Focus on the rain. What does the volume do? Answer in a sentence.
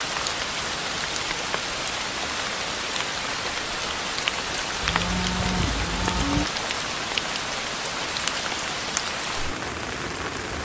The volume of the rain stays about the same.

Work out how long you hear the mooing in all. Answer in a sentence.
You can hear the mooing for 2 seconds altogether.